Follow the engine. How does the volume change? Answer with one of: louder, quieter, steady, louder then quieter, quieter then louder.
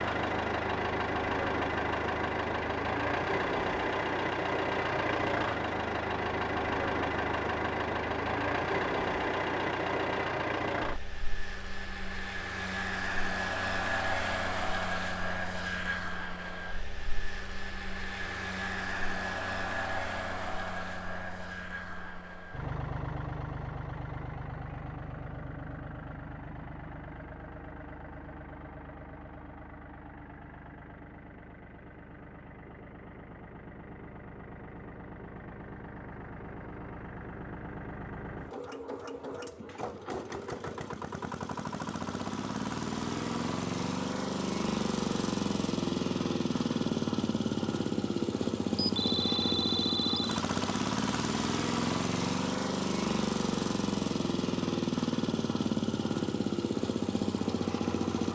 quieter then louder.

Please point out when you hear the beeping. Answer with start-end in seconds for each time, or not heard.
48.8-50.4.